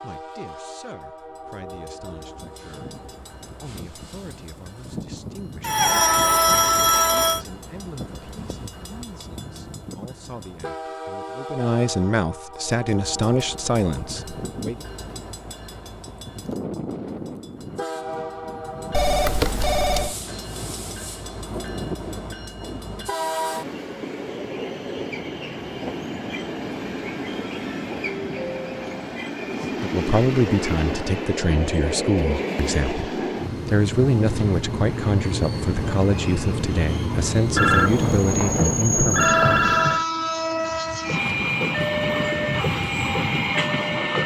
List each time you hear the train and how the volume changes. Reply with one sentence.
You can hear the train from 0.0 to 44.2 s, getting louder.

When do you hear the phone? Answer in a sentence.
The phone can be heard from 5.6 to 7.5 s, from 18.9 to 20.1 s and from 37.5 to 40.0 s.